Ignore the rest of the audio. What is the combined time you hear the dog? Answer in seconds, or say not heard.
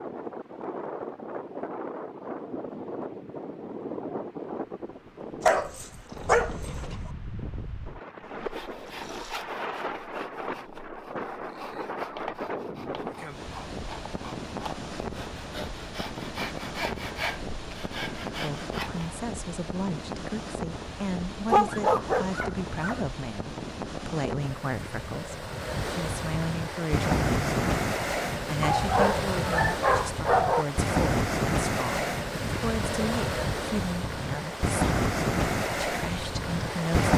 5 s.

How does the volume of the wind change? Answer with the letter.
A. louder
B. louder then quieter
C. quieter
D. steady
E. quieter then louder
A.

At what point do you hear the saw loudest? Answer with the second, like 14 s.
17 s.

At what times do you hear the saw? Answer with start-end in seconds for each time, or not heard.
8.5-19.1.